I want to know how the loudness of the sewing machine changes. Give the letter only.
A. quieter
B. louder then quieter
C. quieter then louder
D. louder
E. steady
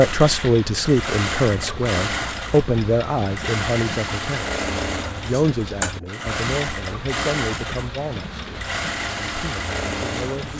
E.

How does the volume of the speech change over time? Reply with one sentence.
The volume of the speech goes down.